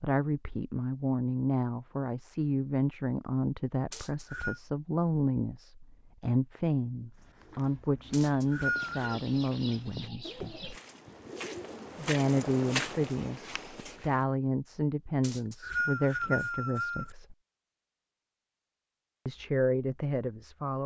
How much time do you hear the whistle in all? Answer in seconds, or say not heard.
4 s.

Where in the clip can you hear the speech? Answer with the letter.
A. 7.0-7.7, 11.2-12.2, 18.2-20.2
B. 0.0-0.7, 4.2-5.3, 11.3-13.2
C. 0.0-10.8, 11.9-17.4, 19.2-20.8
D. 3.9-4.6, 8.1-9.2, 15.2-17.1
C.